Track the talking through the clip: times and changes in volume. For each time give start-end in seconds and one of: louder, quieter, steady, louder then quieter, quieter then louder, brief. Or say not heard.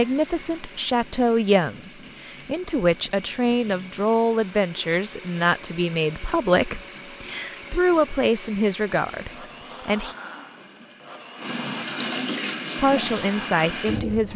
0.0-10.2 steady
12.8-14.3 brief.